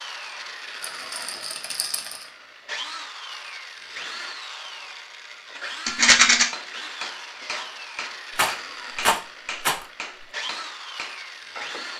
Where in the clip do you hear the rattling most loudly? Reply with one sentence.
The volume of the rattling peaks at 6 seconds.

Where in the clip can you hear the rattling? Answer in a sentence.
You can hear the rattling from 0.8 to 2.2 s, from 5.8 to 6.5 s and from 8.3 to 9.8 s.